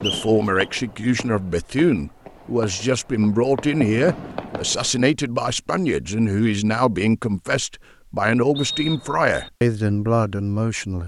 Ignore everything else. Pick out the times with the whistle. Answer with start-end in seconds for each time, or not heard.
0.0-0.7, 8.6-9.5.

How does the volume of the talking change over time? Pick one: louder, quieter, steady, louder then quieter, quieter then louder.
steady.